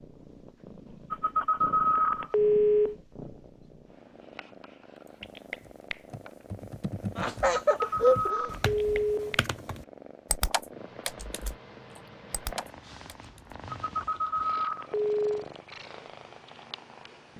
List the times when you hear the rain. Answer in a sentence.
You can't hear the rain here.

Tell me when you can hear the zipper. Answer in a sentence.
The zipper can't be heard in this clip.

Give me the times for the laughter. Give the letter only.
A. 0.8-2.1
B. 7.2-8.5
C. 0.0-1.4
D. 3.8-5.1
B.